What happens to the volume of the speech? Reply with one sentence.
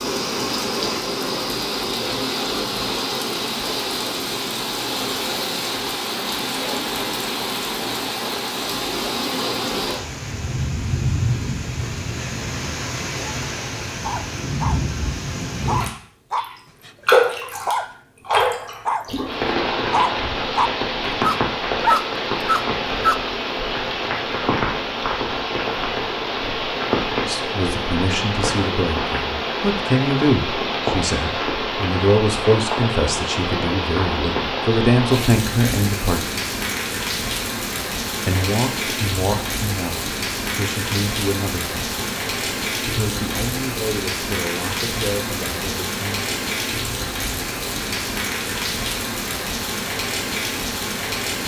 The loudness of the speech goes down.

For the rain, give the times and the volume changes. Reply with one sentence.
The rain can be heard from 0.0 to 51.4 s, at a steady volume.